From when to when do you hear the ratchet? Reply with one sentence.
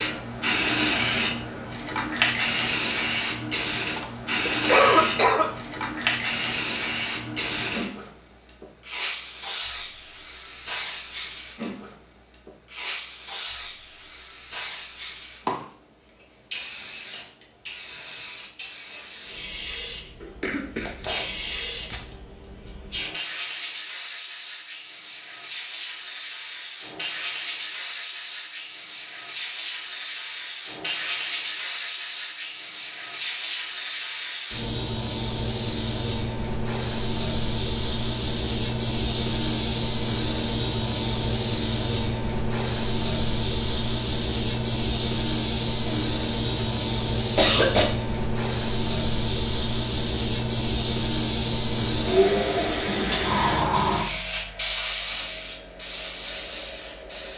The ratchet can't be heard in this clip.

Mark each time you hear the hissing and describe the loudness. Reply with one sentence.
The hissing can be heard from 0.0 to 57.3 s, getting quieter then louder.